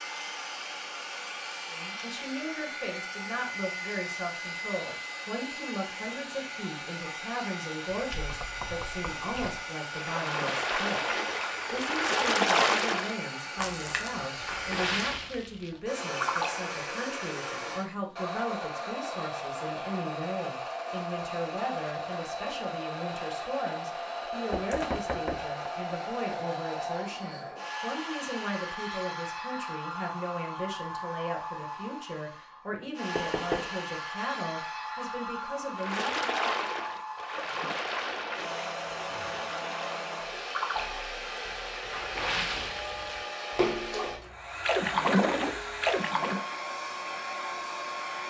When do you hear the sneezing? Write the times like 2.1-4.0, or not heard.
not heard.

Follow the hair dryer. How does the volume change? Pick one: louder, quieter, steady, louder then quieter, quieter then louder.
steady.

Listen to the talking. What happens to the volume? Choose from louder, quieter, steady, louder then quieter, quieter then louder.
steady.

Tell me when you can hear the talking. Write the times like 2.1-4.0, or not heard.
1.7-36.1.